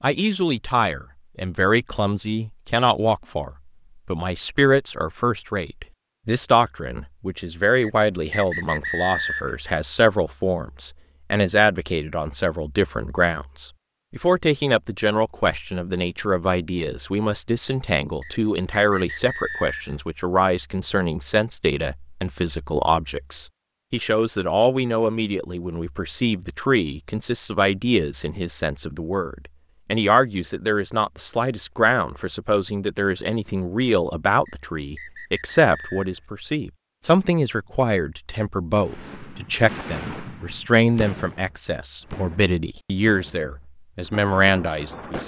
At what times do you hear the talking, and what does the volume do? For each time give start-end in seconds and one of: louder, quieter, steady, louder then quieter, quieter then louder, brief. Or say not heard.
0.0-45.2 steady.